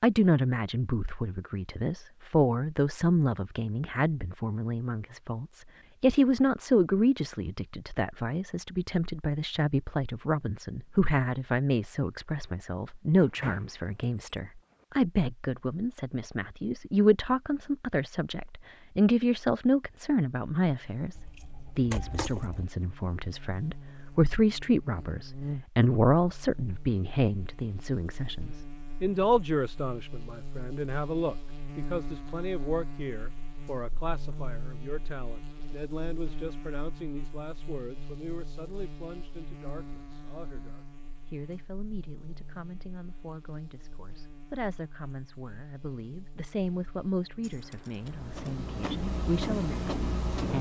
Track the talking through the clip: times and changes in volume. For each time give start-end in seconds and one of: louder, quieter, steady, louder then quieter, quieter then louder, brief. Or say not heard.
0.0-50.5 quieter.